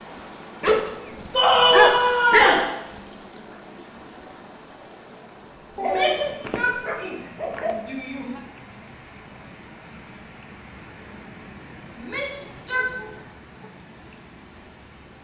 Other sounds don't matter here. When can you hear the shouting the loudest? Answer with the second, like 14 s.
2 s.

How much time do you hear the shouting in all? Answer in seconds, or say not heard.
5 s.